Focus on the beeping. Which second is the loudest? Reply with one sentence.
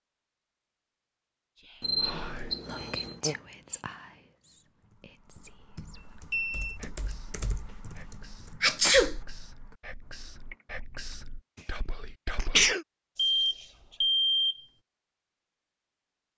The volume of the beeping peaks at 14 seconds.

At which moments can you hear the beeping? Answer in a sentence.
You can hear the beeping from 1.8 to 3.2 s, from 6.0 to 6.8 s and from 13.4 to 14.7 s.